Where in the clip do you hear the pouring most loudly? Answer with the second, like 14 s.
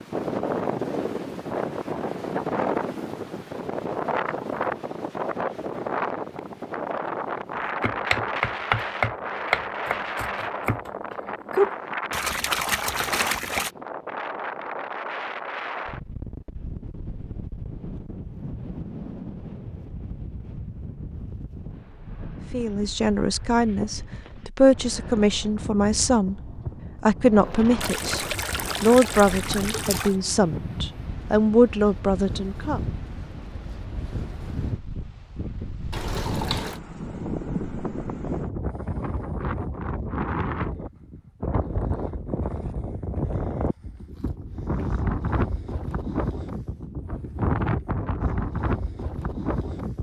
13 s.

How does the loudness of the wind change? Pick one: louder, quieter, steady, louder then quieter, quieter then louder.
quieter then louder.